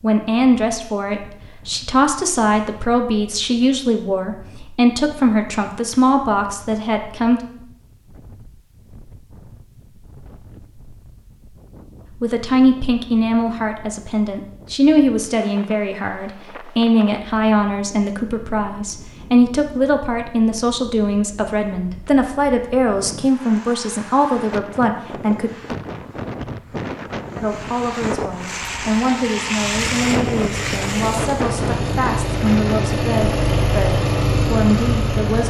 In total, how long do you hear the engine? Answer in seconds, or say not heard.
7 s.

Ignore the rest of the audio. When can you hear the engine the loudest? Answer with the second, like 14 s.
34 s.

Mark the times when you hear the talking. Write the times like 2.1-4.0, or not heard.
0.0-7.4, 12.2-25.5, 27.4-35.4.